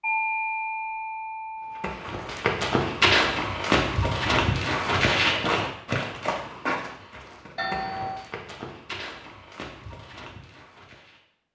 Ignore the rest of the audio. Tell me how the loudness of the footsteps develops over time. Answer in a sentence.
The volume of the footsteps goes down.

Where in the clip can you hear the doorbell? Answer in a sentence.
The doorbell can be heard from 0.0 to 1.9 s and from 7.5 to 8.2 s.